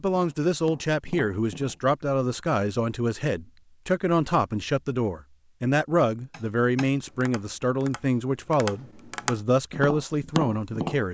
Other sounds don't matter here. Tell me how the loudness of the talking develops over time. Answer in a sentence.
The loudness of the talking stays about the same.